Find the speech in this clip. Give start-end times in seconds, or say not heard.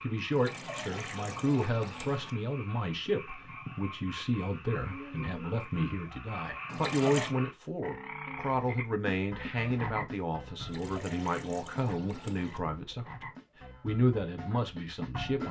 0.0-15.4.